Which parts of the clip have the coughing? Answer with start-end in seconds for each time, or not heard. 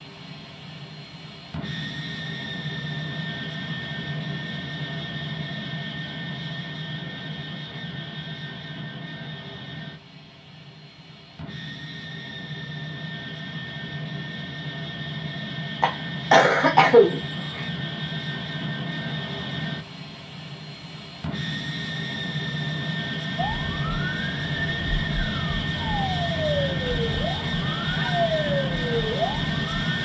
15.8-17.6.